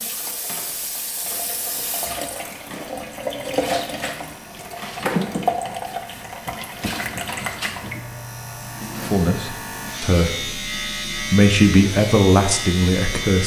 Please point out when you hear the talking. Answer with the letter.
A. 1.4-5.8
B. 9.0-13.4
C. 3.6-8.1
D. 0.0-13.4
B.